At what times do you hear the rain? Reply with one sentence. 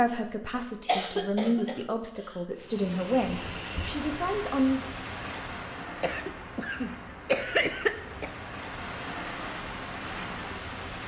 You can hear the rain from 2.5 to 11.0 s.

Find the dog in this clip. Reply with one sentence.
You can't hear the dog here.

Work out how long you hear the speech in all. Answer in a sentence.
The speech can be heard for 5 seconds in total.